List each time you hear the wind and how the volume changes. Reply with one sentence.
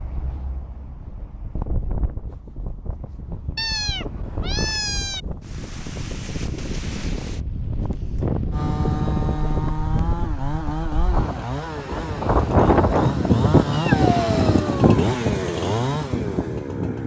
The wind can be heard from 0.0 to 17.0 s, getting louder.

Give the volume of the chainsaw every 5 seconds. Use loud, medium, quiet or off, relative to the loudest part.
off, loud, loud, loud.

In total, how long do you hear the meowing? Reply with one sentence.
You can hear the meowing for 3 seconds altogether.